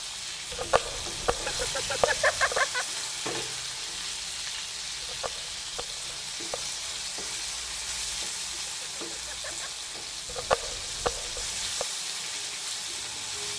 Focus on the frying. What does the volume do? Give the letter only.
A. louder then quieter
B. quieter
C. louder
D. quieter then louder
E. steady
E.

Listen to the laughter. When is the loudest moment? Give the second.
2 s.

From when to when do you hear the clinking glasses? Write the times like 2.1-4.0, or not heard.
not heard.